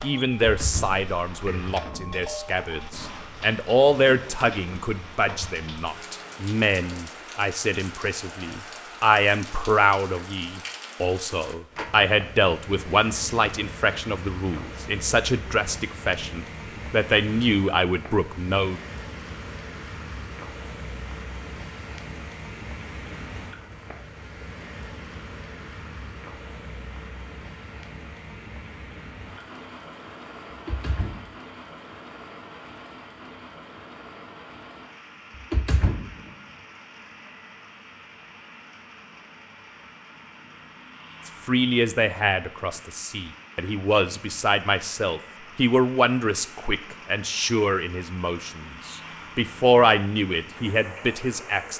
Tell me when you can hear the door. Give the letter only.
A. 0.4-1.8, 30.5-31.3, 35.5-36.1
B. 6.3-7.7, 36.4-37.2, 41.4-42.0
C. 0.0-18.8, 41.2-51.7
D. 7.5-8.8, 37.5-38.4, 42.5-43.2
A.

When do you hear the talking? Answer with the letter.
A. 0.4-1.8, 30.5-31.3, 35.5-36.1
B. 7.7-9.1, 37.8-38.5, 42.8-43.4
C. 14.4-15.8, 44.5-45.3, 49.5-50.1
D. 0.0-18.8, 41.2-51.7
D.